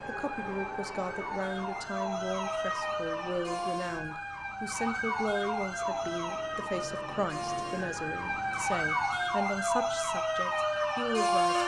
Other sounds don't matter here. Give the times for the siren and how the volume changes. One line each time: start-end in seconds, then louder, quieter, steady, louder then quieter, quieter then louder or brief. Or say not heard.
0.0-11.6 louder.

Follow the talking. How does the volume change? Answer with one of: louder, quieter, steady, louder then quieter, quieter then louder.
steady.